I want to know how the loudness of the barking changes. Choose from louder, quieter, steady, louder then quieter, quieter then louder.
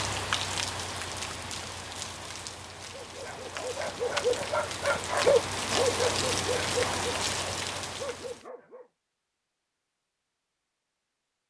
louder then quieter.